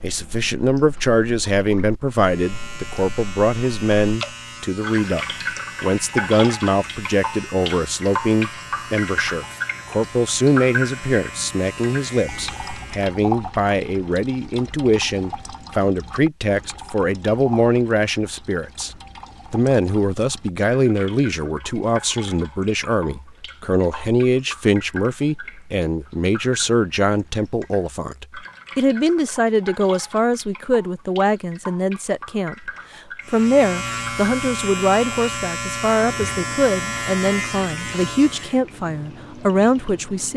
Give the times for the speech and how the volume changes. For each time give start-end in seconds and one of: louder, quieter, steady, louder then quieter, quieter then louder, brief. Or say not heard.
0.0-40.3 steady.